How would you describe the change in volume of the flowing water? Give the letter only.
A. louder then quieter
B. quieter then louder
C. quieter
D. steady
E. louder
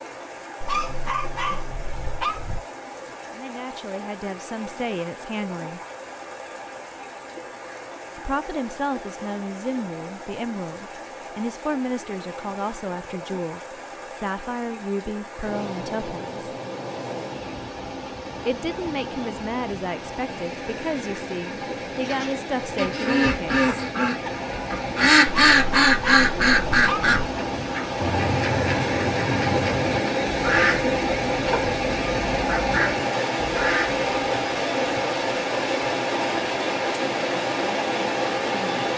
E.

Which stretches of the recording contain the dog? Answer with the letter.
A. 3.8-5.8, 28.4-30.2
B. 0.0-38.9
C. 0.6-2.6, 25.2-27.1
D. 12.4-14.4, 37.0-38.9
C.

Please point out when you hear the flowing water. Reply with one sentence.
You can hear the flowing water from 0.0 to 38.9 s.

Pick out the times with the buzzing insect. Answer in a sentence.
You can't hear the buzzing insect here.